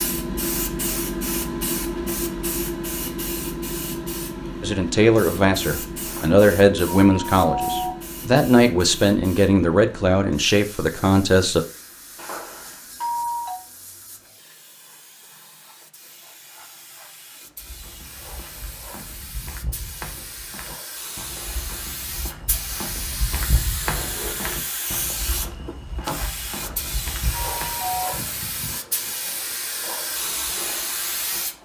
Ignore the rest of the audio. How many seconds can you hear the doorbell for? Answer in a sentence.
You can hear the doorbell for 5 seconds altogether.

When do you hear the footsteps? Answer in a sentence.
The footsteps can be heard from 17.6 to 27.9 s.